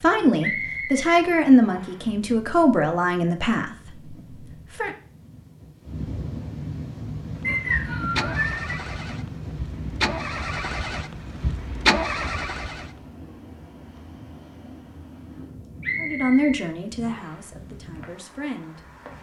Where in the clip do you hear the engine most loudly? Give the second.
12 s.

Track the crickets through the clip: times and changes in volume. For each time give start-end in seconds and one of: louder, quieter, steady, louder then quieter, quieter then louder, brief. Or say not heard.
not heard.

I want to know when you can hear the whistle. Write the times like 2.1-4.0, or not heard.
0.4-1.9, 7.4-8.6, 15.8-17.4.